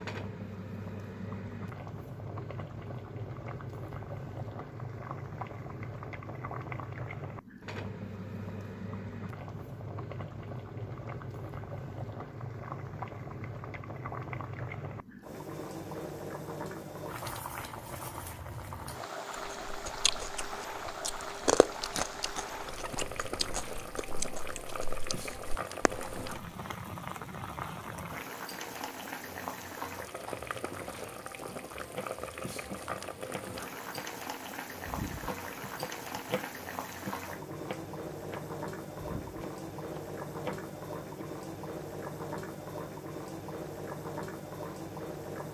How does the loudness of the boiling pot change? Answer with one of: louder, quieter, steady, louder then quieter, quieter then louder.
steady.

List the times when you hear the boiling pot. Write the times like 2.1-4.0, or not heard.
0.0-45.5.